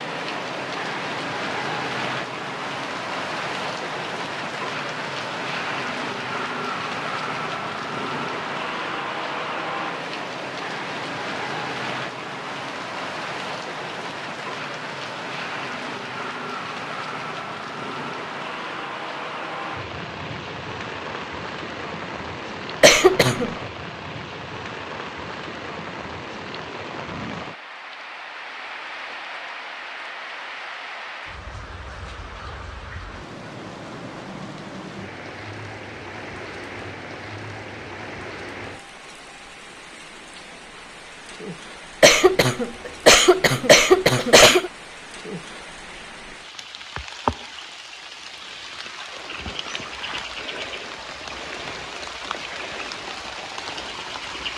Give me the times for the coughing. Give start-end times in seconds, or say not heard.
22.8-23.5, 42.0-44.7.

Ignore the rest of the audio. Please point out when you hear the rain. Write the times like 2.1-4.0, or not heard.
0.0-54.5.